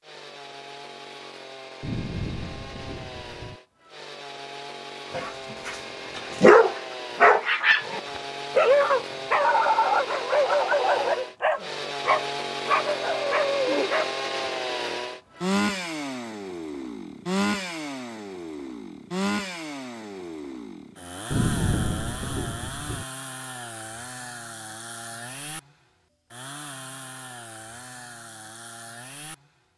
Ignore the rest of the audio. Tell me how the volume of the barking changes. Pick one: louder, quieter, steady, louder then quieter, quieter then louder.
quieter.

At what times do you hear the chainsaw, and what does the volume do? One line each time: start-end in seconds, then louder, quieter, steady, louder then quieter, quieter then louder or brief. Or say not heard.
0.0-29.5 louder then quieter.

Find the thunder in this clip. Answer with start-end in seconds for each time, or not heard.
1.8-3.6, 21.3-23.1.